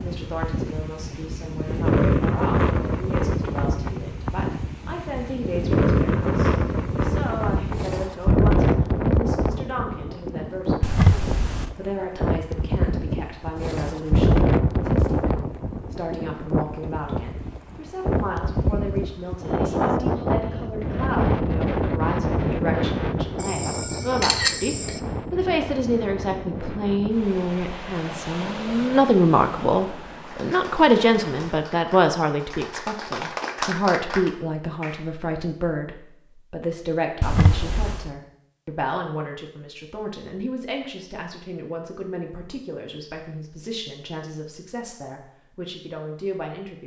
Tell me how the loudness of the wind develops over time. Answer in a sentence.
The volume of the wind goes down.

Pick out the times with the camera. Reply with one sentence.
You can hear the camera from 10.8 to 11.7 s, from 23.4 to 25.0 s and from 37.2 to 38.1 s.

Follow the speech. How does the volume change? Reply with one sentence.
The volume of the speech goes up, then down.